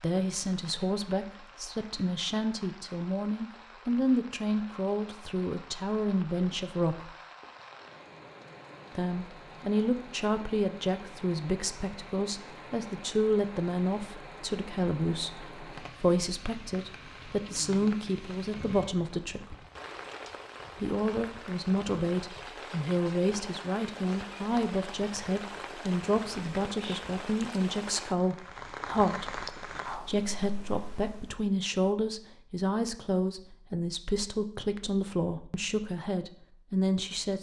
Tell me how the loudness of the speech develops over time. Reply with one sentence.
The volume of the speech stays about the same.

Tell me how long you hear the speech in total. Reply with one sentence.
The speech can be heard for 34 seconds in total.